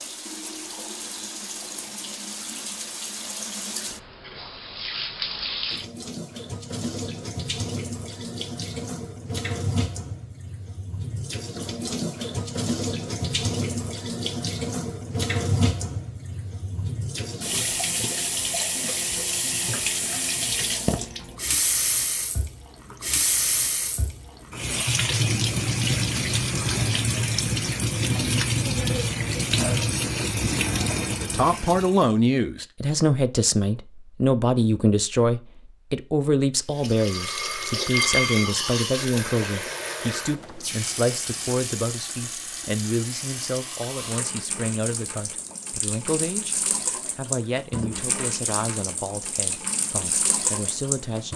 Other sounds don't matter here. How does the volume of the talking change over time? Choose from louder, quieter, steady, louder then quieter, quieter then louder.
quieter.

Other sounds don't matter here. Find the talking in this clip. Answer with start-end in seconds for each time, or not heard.
31.1-46.5, 47.1-51.3.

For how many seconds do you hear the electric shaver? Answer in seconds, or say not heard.
not heard.